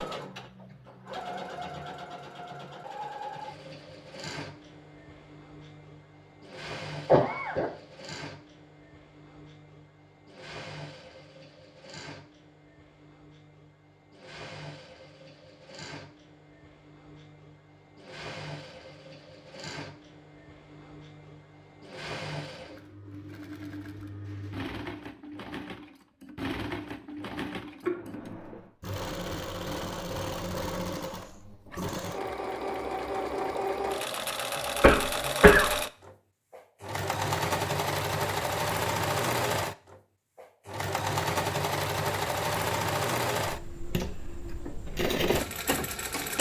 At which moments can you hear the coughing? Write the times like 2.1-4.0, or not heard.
7.0-7.7, 27.8-28.6, 34.8-35.7.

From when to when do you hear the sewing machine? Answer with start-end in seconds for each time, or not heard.
0.0-46.3.